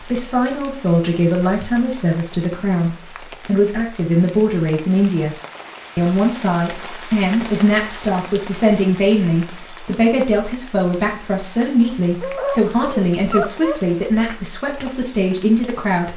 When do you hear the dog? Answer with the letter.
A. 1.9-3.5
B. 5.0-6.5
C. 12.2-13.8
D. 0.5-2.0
C.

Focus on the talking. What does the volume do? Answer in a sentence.
The loudness of the talking stays about the same.